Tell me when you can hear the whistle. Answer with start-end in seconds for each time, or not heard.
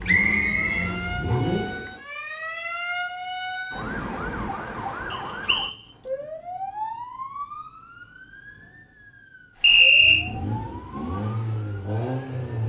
0.1-1.4, 5.1-5.8, 9.6-10.2.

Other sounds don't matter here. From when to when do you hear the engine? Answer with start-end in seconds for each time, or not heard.
0.0-2.0, 9.6-12.6.